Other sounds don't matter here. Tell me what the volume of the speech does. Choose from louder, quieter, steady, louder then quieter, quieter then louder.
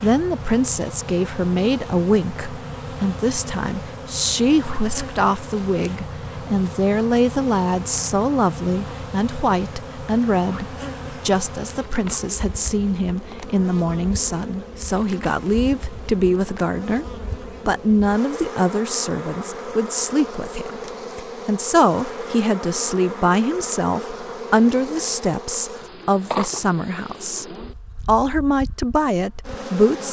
steady.